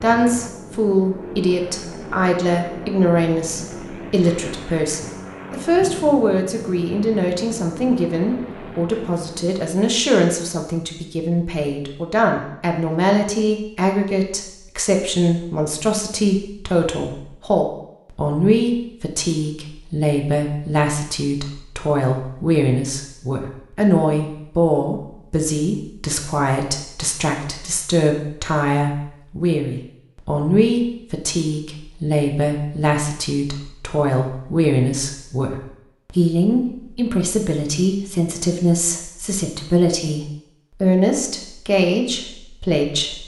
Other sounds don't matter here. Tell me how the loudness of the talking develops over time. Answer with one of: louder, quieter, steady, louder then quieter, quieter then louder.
steady.